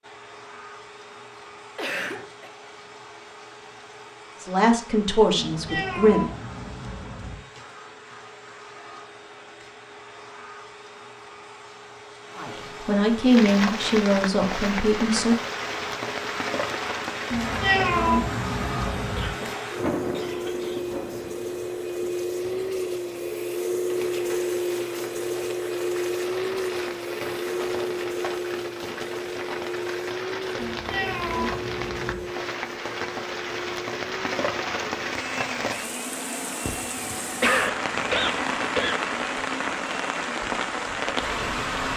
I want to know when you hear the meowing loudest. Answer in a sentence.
The loudest moment of the meowing is at 18 seconds.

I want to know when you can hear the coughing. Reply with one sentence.
The coughing can be heard from 1.4 to 2.5 s, from 19.1 to 20.8 s and from 36.6 to 39.0 s.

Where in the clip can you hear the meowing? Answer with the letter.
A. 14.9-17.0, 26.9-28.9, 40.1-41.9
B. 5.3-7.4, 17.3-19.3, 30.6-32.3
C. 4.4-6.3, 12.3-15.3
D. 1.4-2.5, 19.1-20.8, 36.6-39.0
B.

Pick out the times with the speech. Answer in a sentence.
You can hear the speech from 4.4 to 6.3 s and from 12.3 to 15.3 s.